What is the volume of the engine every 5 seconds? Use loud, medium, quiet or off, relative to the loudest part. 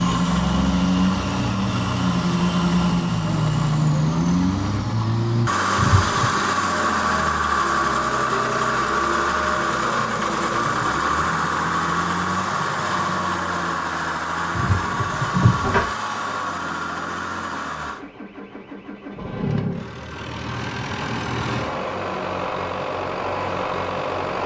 loud, loud, loud, medium, medium.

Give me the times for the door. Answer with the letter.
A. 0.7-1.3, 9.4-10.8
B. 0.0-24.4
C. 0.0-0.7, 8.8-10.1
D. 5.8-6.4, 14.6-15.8
D.